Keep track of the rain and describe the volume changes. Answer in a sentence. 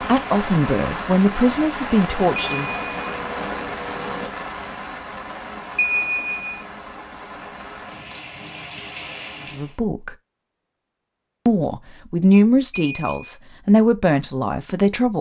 The loudness of the rain goes down.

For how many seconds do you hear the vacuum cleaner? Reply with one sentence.
You can hear the vacuum cleaner for 2 seconds altogether.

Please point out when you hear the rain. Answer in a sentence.
The rain can be heard from 0.0 to 9.8 s.